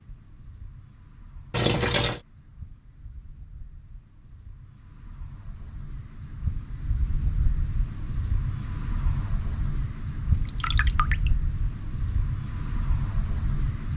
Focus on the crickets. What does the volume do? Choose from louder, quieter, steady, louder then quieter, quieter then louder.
louder.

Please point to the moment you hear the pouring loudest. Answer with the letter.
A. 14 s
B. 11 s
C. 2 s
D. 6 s
C.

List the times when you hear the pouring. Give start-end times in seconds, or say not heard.
1.5-2.2, 10.3-11.3.